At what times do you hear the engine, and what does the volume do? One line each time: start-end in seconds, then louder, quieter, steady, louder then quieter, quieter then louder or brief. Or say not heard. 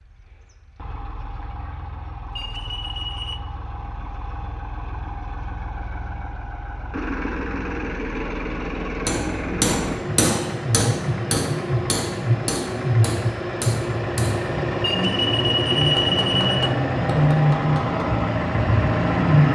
0.0-19.5 louder.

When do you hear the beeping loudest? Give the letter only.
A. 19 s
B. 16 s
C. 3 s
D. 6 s
B.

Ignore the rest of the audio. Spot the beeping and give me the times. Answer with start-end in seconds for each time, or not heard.
2.4-3.4, 14.8-16.6.